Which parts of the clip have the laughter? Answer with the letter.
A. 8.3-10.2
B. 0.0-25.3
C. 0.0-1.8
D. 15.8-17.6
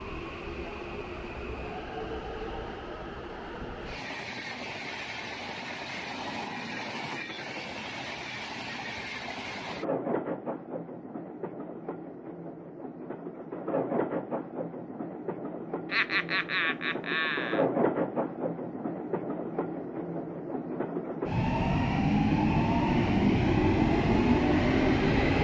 D.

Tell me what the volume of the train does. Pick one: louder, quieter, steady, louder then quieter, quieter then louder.
louder.